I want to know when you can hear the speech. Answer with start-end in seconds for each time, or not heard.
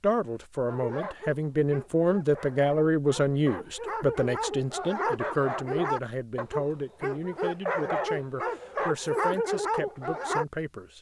0.0-10.9.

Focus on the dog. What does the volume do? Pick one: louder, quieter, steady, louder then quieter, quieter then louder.
louder.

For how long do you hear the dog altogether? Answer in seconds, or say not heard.
10 s.